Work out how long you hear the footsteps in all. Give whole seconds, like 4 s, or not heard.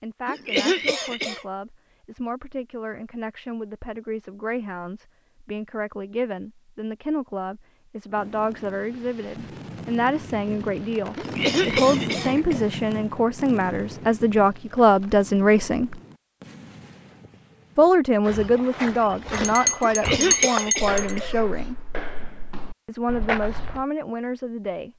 6 s.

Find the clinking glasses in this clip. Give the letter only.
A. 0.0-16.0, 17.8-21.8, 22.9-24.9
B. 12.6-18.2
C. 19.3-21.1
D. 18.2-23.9
C.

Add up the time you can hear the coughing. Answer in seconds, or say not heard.
4 s.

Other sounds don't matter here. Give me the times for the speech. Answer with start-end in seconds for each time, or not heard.
0.0-16.0, 17.8-21.8, 22.9-24.9.